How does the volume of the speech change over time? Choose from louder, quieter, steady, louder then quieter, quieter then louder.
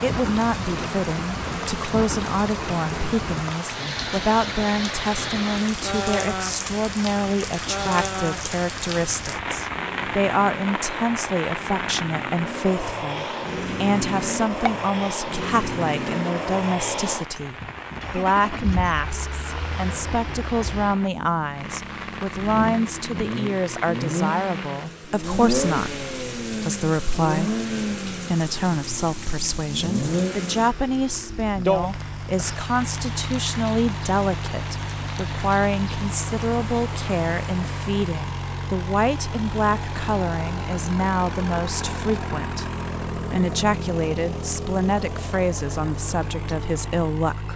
steady.